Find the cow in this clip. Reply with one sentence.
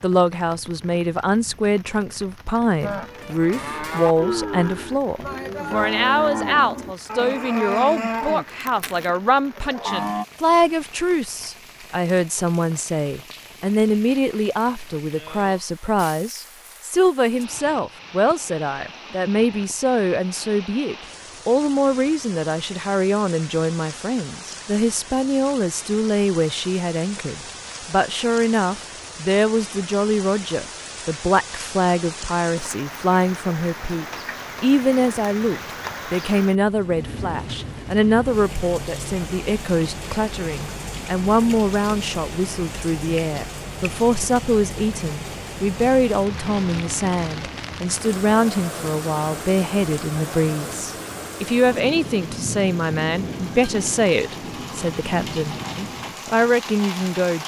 The cow can be heard from 2.8 to 10.2 s.